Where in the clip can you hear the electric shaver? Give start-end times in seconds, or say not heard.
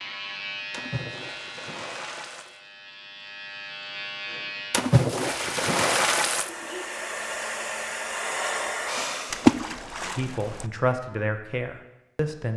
0.0-4.9.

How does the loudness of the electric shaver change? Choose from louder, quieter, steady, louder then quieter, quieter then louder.
quieter then louder.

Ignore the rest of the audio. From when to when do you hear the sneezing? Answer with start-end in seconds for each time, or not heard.
4.2-4.7, 6.5-6.9.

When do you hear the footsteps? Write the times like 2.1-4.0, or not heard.
not heard.